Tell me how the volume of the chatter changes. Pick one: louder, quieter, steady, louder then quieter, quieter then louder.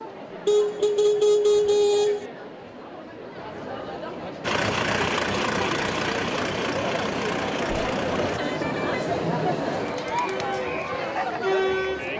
louder.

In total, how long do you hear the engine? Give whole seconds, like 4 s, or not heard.
4 s.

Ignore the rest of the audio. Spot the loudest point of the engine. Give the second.
5 s.